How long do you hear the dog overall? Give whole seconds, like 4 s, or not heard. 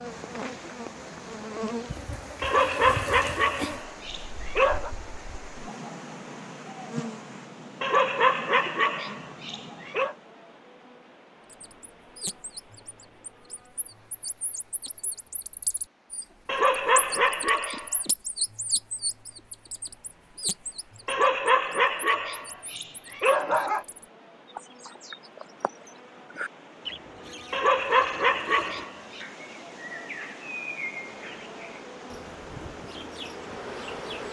11 s.